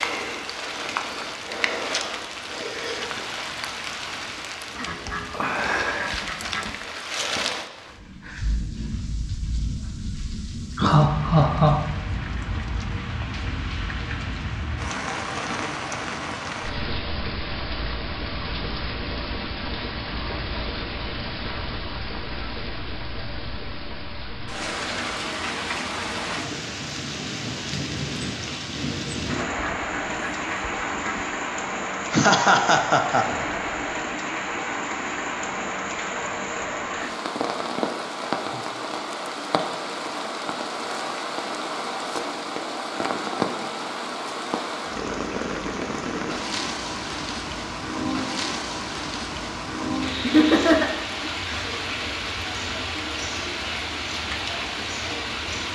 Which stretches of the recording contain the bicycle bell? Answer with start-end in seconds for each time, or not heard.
not heard.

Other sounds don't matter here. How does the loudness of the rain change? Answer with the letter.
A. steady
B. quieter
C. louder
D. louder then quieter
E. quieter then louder
A.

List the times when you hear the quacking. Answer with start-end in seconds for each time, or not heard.
4.7-6.7, 29.2-31.2.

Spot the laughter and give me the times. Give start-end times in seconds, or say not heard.
10.8-12.4, 32.1-33.5, 50.2-51.8.